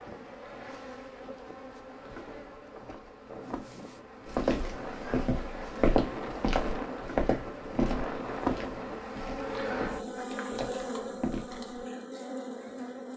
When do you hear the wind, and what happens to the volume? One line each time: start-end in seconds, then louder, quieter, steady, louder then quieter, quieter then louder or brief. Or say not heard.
0.0-9.1 louder.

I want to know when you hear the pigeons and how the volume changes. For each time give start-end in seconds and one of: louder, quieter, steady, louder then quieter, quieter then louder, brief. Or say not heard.
not heard.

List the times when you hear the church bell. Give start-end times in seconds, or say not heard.
not heard.